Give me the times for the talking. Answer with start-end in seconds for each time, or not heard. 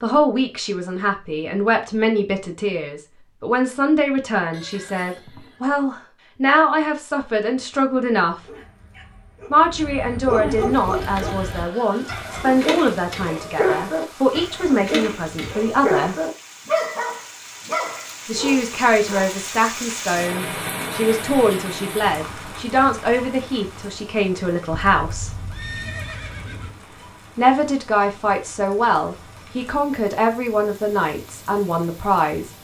0.0-8.4, 9.5-16.1, 18.2-25.4, 27.4-32.5.